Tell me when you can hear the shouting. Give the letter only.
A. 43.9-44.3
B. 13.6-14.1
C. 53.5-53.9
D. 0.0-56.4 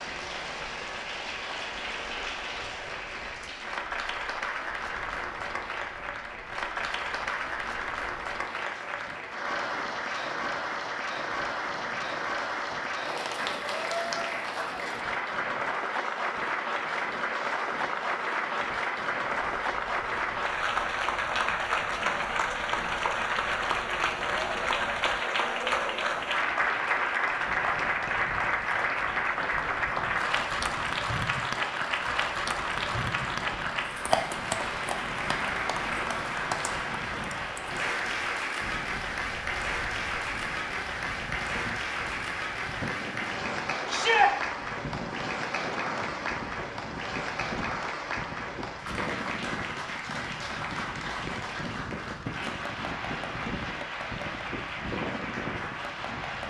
A.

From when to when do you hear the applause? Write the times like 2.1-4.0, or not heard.
0.0-56.4.